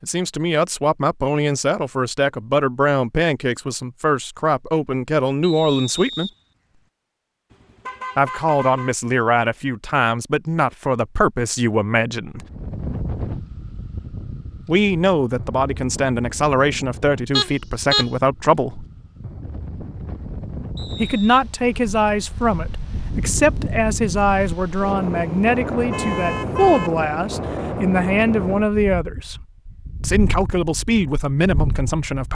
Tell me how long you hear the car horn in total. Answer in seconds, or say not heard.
4 s.